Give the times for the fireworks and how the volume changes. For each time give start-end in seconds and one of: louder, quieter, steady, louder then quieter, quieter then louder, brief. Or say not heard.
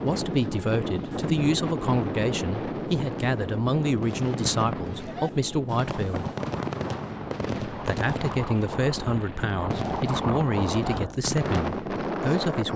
3.9-12.0 steady.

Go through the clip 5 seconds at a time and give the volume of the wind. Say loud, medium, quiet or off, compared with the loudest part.
loud, medium, loud.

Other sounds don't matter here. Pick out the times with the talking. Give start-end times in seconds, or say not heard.
0.0-6.3, 7.7-12.7.